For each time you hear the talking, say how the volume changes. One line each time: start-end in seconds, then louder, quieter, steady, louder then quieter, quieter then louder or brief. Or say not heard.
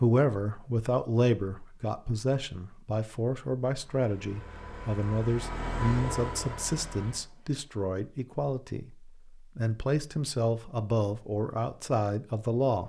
0.0-12.8 steady.